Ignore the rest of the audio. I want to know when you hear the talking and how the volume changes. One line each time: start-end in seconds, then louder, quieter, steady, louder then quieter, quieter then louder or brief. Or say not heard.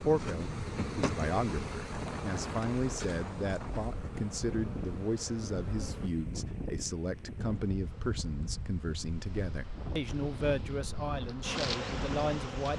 0.0-12.7 steady.